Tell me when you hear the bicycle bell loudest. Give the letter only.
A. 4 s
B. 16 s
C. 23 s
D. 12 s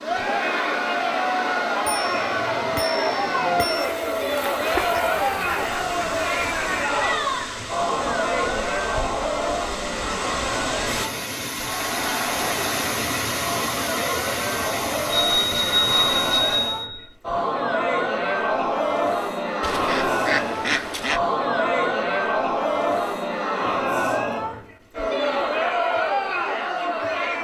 B.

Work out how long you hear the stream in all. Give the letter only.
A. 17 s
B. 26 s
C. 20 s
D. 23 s
A.